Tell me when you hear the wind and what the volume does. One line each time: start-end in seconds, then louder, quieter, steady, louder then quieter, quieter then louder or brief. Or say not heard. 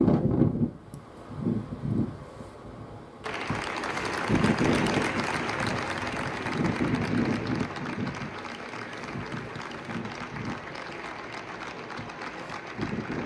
0.0-13.2 quieter.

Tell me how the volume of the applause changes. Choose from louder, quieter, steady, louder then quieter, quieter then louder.
quieter.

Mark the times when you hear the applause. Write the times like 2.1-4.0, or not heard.
3.2-13.2.